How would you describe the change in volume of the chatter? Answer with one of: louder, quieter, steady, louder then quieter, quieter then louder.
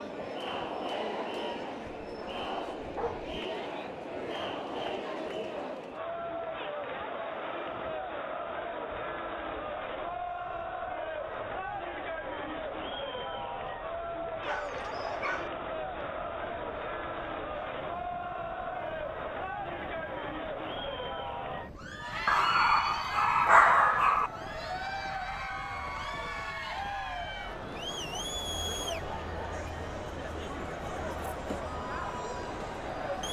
steady.